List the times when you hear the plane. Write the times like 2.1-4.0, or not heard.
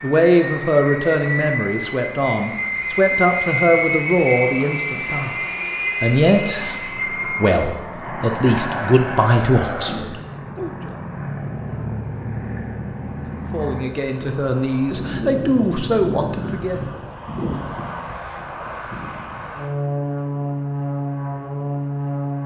0.0-22.4.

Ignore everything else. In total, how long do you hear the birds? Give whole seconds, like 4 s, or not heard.
not heard.